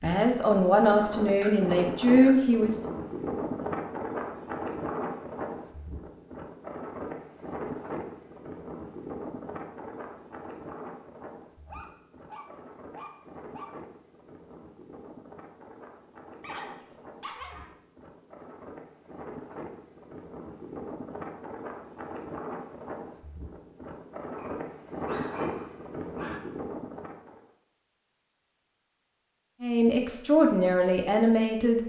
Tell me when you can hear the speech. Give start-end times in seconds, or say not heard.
0.0-2.8, 29.6-31.8.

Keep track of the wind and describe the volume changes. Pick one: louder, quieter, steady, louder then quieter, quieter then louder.
quieter then louder.